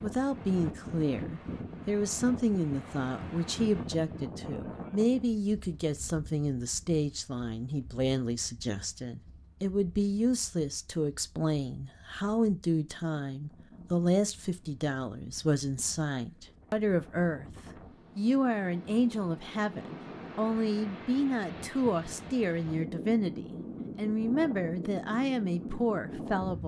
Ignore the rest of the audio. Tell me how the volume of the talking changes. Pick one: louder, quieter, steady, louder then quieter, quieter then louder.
steady.